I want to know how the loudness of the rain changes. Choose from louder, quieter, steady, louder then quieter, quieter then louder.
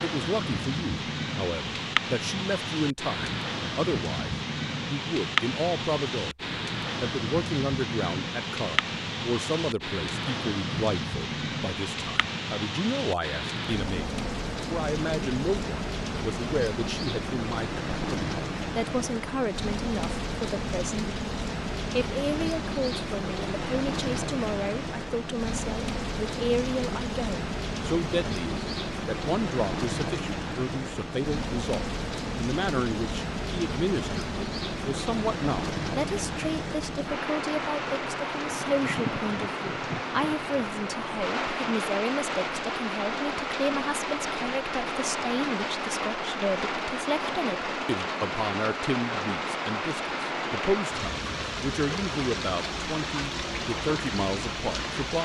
steady.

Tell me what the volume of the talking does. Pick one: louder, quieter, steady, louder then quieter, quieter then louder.
steady.